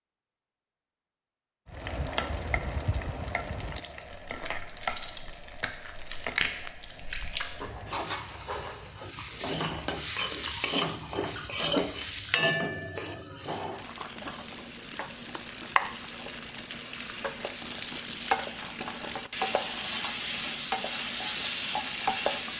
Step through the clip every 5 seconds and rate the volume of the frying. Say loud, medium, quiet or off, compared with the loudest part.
medium, medium, loud, loud, loud.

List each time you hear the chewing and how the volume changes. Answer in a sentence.
You can hear the chewing from 4.2 to 12.4 s, getting quieter.